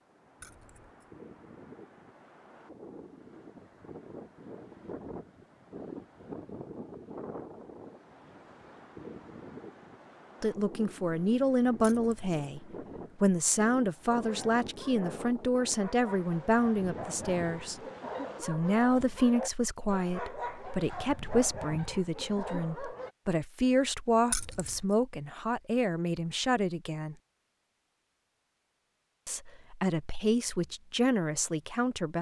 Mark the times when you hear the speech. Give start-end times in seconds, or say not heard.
10.4-17.8, 18.4-27.1, 29.2-32.1.